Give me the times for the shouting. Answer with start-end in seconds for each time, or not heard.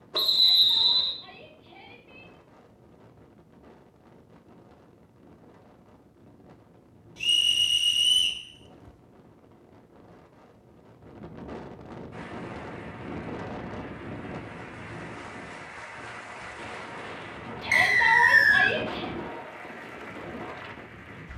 0.3-2.3, 17.6-19.1.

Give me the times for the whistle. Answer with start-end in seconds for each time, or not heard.
0.1-1.2, 7.2-8.4, 17.7-18.8.